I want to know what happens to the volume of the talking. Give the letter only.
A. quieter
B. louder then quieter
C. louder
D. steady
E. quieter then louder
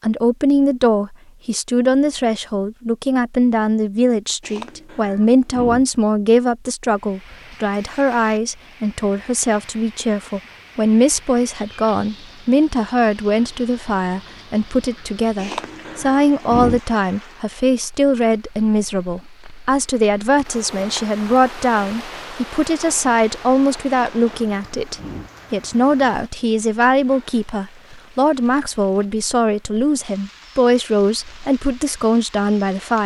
D.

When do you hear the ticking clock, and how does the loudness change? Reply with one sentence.
You can't hear the ticking clock here.